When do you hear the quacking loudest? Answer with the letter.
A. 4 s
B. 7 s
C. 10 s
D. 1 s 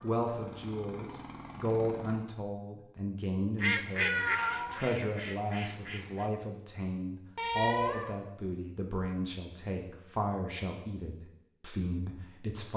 A.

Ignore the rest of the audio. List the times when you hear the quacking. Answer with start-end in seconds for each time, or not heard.
3.6-6.2.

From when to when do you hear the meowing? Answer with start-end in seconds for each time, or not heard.
4.0-4.8, 7.3-8.1.